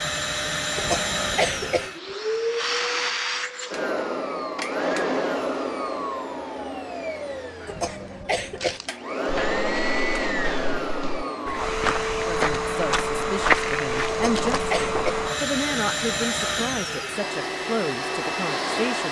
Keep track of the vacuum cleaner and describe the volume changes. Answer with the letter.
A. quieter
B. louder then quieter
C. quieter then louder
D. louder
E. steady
E.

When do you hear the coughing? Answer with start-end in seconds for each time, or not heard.
0.8-1.9, 7.7-8.8, 14.1-15.2.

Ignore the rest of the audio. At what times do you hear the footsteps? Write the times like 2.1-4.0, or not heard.
8.6-15.3.